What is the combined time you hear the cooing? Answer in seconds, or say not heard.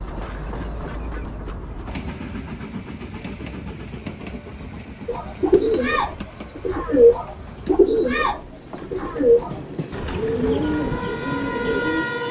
7 s.